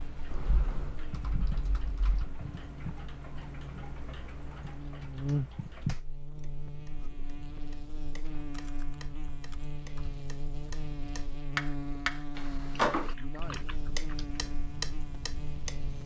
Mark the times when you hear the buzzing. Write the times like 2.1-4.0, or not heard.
0.0-16.0.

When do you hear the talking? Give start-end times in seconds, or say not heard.
13.0-13.8.